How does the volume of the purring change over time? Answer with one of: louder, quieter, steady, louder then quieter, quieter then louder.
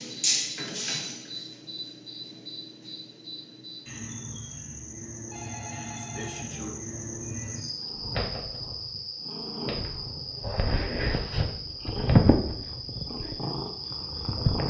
louder then quieter.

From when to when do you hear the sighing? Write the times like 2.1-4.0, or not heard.
not heard.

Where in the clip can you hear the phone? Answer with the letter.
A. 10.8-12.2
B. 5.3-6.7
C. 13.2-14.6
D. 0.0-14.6
B.